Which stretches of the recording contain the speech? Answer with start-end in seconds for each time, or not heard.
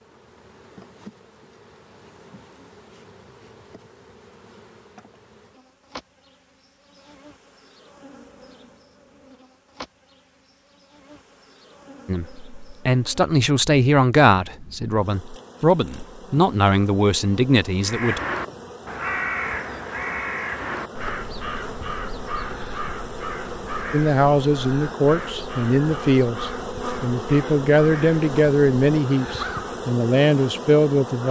12.1-18.2, 23.9-31.2.